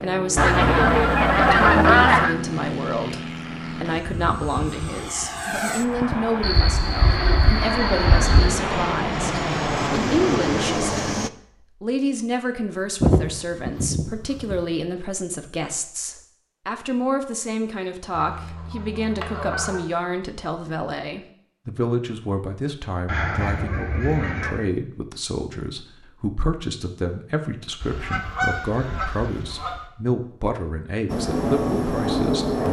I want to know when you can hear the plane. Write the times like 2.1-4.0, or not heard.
0.0-11.3, 31.1-32.6.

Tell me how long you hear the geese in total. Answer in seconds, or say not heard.
11 s.